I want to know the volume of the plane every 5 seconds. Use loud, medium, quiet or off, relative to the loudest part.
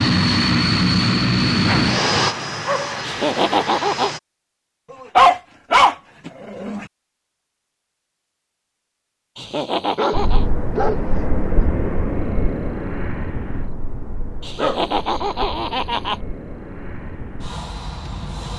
loud, off, medium, quiet.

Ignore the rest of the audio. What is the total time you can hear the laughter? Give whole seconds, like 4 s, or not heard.
4 s.